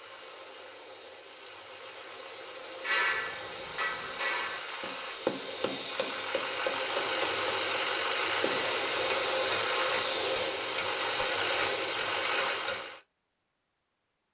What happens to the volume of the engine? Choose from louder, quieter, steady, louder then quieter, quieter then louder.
louder.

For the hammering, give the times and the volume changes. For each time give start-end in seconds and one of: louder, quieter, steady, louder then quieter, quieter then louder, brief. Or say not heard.
2.8-12.8 quieter.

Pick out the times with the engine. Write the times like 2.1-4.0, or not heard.
0.0-13.0.